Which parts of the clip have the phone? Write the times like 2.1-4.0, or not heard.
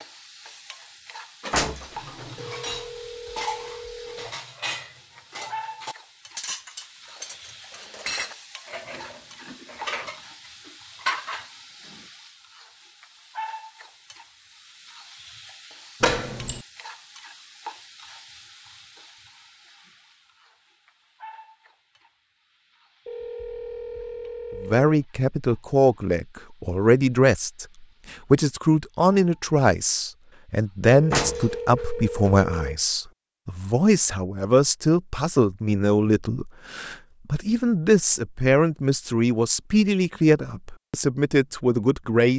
2.4-4.3, 23.1-24.9, 30.8-32.8.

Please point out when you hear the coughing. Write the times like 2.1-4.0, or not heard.
not heard.